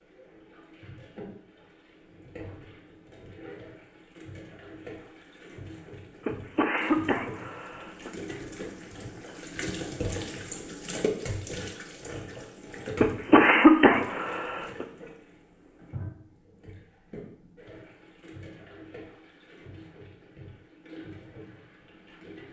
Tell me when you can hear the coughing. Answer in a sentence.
The coughing can be heard from 6.2 to 8.1 s and from 13.0 to 14.8 s.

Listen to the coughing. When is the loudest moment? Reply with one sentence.
The volume of the coughing peaks at 14 seconds.